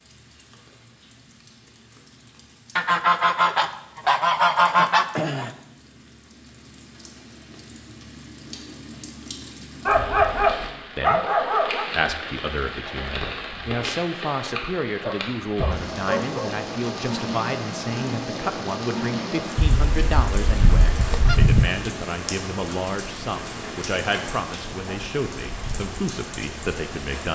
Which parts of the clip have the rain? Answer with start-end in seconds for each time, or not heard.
0.0-27.2.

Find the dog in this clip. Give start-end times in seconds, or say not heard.
9.8-11.8, 15.0-16.6.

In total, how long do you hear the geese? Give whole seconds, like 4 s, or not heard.
5 s.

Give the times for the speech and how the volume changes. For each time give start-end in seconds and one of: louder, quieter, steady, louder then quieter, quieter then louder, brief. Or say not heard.
10.9-27.2 steady.